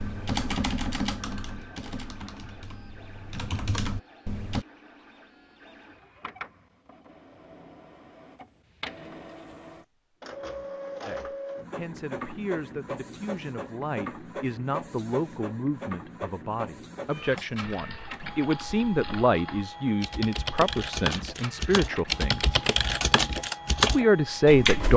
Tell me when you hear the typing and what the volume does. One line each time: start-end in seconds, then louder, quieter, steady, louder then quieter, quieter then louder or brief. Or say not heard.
0.0-4.7 quieter then louder
17.4-24.9 louder.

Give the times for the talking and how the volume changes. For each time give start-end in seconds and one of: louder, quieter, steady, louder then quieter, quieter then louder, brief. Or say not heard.
11.1-22.6 louder
23.8-24.9 brief.